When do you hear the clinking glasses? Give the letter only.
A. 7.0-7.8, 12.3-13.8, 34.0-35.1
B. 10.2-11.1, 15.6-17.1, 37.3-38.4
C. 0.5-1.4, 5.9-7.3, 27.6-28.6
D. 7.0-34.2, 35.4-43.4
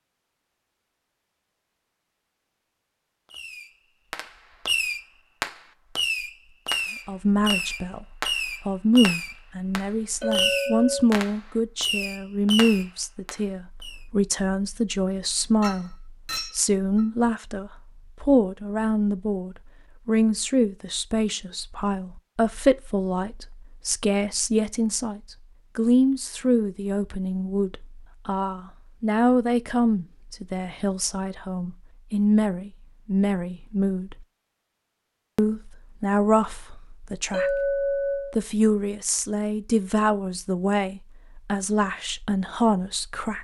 B.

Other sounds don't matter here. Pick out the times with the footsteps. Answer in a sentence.
You can't hear the footsteps here.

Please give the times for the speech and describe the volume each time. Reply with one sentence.
The speech can be heard from 7.0 to 34.2 s, at a steady volume; and from 35.4 to 43.4 s, at a steady volume.